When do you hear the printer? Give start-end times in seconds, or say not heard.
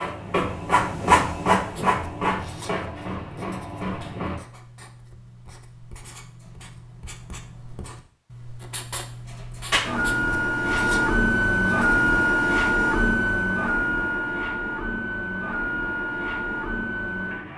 0.0-4.4, 9.7-17.5.